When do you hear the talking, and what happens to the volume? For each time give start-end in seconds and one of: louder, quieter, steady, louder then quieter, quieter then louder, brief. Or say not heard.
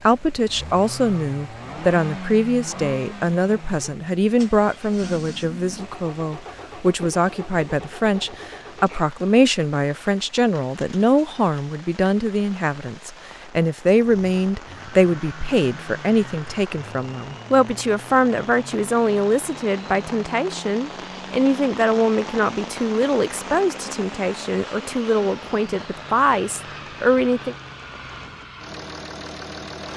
0.0-27.6 steady.